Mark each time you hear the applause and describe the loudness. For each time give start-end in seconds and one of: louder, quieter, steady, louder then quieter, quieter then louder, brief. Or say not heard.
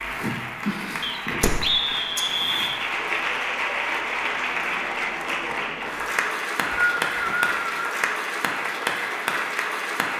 0.0-10.1 steady.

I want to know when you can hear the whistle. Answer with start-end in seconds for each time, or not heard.
1.0-2.8, 6.2-8.0.